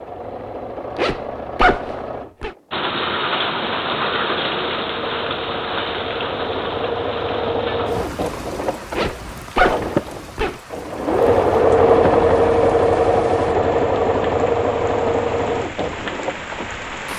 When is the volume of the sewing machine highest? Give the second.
12 s.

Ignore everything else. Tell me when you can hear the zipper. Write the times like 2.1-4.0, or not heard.
0.9-2.5, 8.9-10.6.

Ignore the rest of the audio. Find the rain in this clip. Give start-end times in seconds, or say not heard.
2.7-17.1.